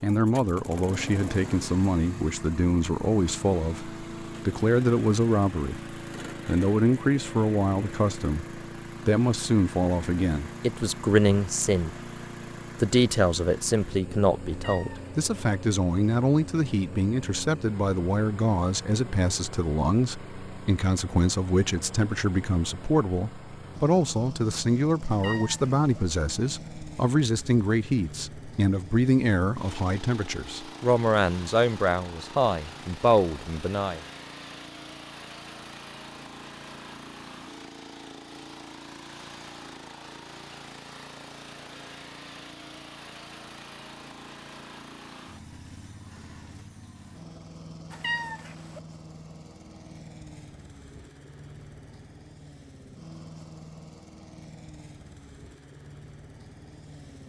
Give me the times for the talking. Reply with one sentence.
The talking can be heard from 0.0 to 12.1 s and from 12.8 to 34.0 s.